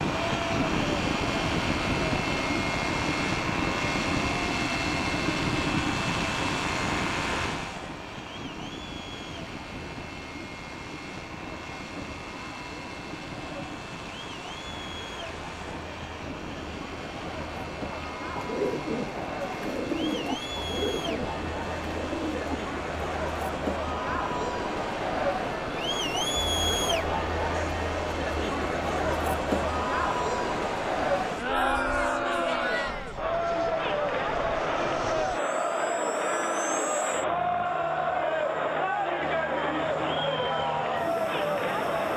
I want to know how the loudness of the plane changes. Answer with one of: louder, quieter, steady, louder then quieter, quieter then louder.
quieter.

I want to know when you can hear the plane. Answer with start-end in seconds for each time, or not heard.
0.0-42.1.